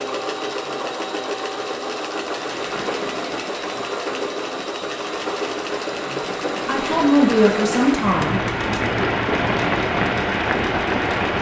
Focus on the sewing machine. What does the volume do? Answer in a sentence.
The volume of the sewing machine stays about the same.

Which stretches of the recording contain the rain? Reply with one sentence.
The rain can be heard from 2.4 to 11.3 s.